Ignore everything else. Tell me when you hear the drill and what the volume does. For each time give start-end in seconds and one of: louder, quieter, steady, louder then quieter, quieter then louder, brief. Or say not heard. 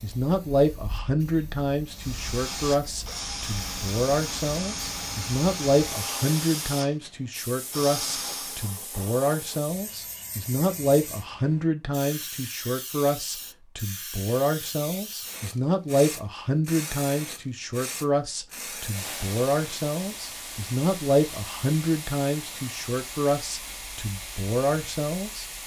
1.9-8.7 steady.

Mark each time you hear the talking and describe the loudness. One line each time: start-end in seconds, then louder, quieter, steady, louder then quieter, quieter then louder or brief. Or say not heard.
0.0-25.4 steady.